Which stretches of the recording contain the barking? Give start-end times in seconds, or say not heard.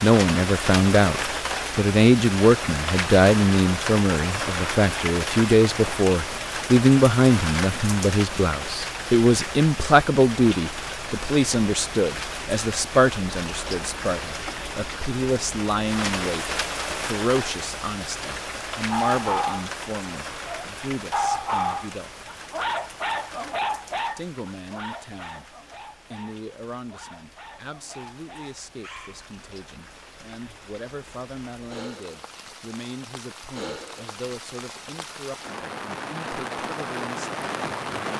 18.9-19.7, 20.4-29.2.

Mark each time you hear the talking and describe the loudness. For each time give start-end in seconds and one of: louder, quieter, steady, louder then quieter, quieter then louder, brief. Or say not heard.
0.0-22.3 quieter
24.1-25.4 brief
26.1-38.1 steady.